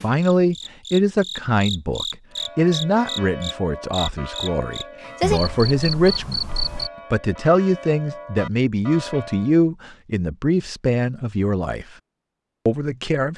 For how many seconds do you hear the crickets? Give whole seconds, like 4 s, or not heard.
7 s.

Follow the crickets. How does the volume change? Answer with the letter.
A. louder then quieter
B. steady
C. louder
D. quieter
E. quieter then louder
C.